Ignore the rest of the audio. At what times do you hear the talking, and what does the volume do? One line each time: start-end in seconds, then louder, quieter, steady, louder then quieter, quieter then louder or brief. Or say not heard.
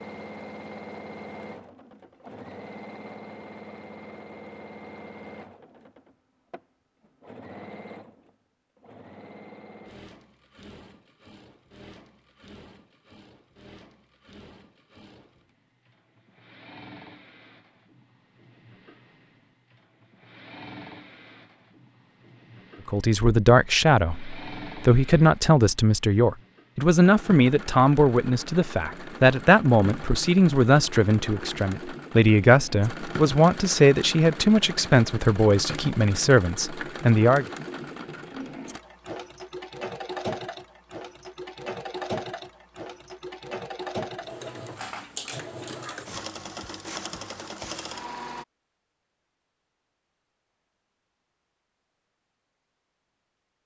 22.9-37.5 steady.